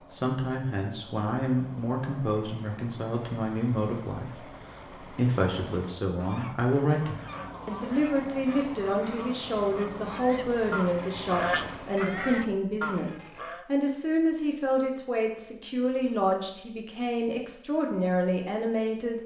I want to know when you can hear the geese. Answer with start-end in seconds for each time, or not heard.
6.2-13.7.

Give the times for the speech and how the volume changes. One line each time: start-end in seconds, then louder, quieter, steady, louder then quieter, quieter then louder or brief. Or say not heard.
0.1-19.2 steady.